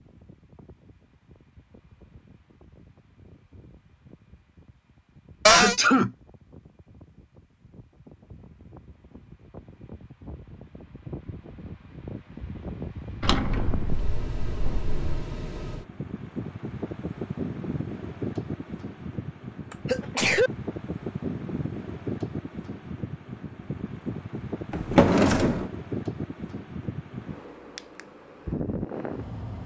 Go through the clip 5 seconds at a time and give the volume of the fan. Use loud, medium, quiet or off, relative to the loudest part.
quiet, quiet, loud, loud, loud, loud.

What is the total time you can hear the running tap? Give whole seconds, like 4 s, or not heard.
not heard.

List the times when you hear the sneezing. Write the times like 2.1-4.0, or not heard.
5.5-6.1, 19.7-20.5.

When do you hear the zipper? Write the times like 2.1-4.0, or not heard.
not heard.